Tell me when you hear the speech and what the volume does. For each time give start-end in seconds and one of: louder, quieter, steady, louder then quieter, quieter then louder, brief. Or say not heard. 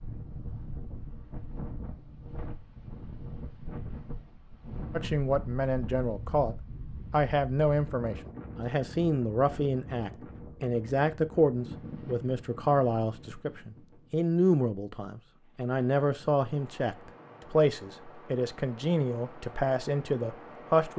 4.9-20.9 steady.